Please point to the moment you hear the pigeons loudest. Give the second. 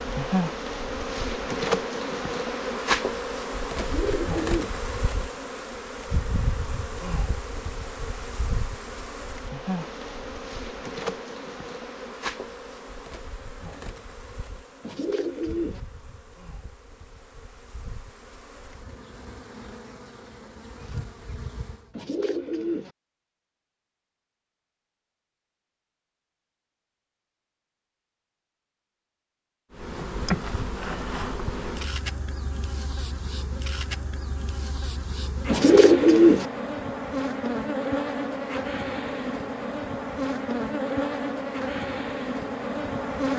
36 s.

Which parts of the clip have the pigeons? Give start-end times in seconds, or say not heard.
3.8-4.8, 14.8-15.8, 21.9-22.9, 35.5-36.5.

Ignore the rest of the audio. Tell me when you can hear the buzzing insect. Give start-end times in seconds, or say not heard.
0.0-21.9, 29.7-43.3.